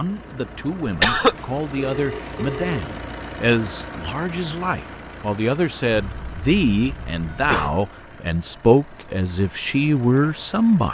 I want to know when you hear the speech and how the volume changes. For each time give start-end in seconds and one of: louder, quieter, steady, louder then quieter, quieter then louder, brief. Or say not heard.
0.0-10.8 louder.